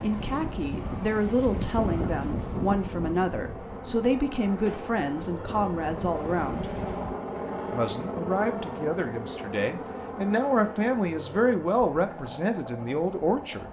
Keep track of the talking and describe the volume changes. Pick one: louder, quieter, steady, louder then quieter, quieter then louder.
steady.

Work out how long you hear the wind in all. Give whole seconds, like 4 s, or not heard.
7 s.